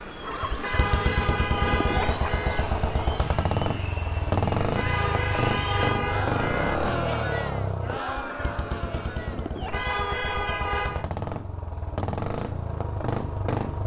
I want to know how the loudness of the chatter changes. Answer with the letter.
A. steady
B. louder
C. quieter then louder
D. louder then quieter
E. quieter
D.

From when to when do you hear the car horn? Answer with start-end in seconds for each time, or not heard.
0.6-2.6, 4.8-6.8, 9.7-11.1.